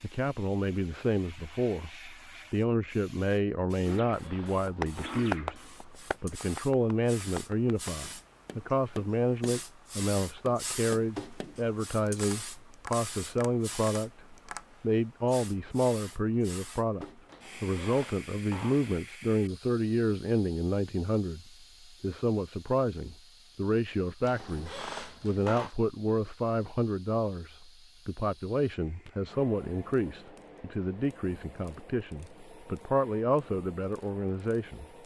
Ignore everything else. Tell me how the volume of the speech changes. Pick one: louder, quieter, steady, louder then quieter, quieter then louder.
steady.